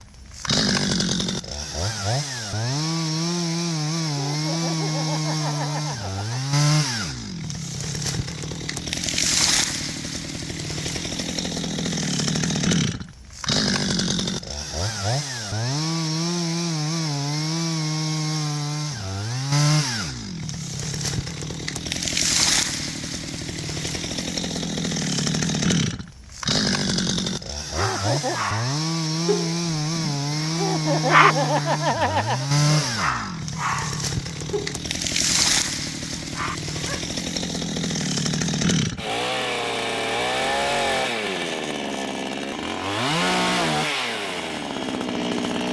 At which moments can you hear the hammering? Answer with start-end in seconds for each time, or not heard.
not heard.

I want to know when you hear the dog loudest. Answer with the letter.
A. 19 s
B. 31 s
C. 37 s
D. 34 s
B.